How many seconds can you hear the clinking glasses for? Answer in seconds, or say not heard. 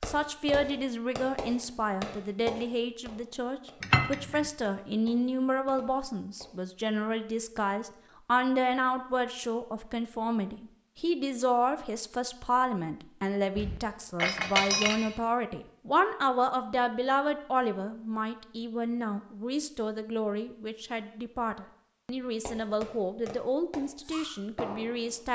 2 s.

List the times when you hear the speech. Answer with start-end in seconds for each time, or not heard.
0.0-25.3.